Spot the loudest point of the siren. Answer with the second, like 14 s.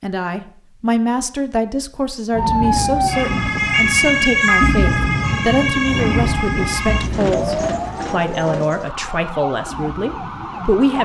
4 s.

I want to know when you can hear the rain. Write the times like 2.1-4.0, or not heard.
2.3-10.9.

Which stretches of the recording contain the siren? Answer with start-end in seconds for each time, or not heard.
2.4-10.9.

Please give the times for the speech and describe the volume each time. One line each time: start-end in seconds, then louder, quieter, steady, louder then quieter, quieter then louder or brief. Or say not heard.
0.0-10.9 steady.